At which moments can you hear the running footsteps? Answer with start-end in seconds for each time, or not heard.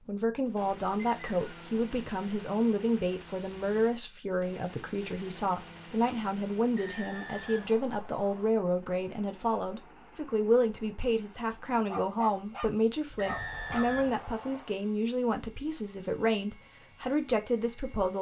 not heard.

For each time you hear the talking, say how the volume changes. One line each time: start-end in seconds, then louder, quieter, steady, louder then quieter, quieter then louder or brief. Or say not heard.
0.1-18.1 steady.